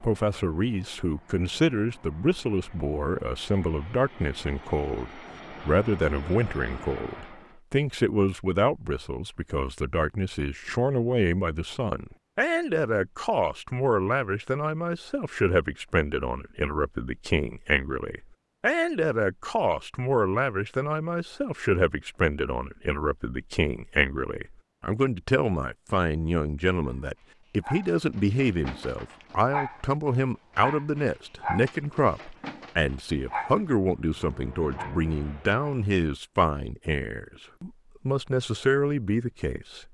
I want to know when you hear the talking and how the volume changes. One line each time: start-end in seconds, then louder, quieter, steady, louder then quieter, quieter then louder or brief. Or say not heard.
0.0-39.8 steady.